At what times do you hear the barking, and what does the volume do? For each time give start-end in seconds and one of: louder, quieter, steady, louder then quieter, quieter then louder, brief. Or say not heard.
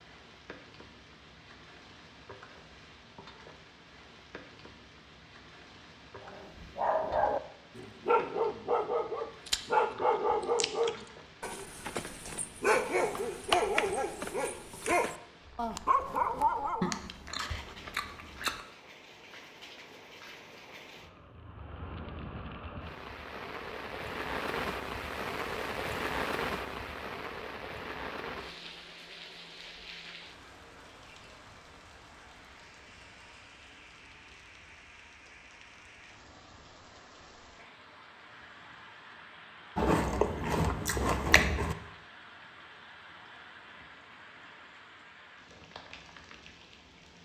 6.2-17.0 quieter then louder.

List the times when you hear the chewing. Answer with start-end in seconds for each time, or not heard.
9.4-11.0, 16.8-18.6, 39.8-41.8.